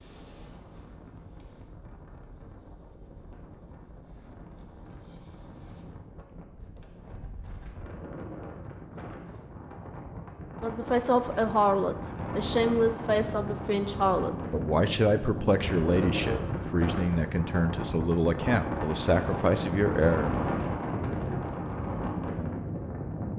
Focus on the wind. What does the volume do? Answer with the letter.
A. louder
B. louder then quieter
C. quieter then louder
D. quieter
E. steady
A.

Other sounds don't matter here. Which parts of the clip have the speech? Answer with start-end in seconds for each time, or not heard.
10.6-20.4.